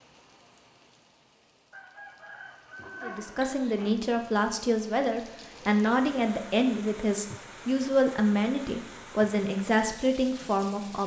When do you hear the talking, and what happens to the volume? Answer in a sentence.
You can hear the talking from 3.0 to 11.0 s, at a steady volume.